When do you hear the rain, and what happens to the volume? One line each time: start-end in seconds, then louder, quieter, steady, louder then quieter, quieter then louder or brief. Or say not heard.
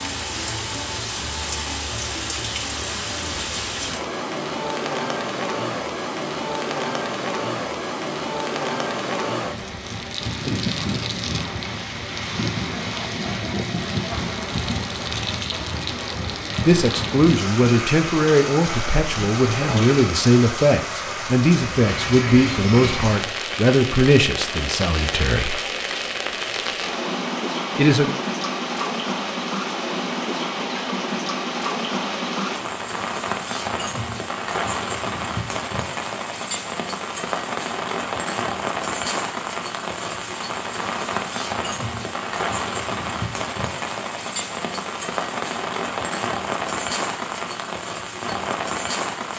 0.0-49.3 steady.